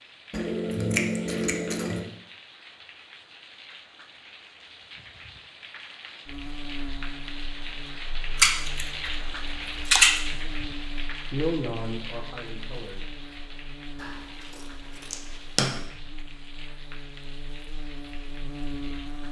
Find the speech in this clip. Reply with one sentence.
The speech can be heard from 11.3 to 13.2 s.